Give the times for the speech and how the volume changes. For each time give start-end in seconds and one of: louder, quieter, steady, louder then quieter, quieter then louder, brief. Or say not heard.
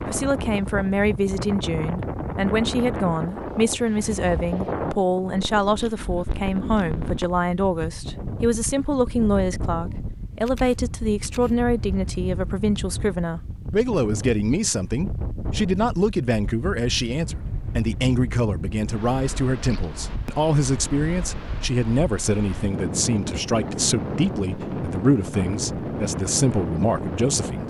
0.1-27.6 steady.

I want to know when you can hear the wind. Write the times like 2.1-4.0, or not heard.
0.0-27.6.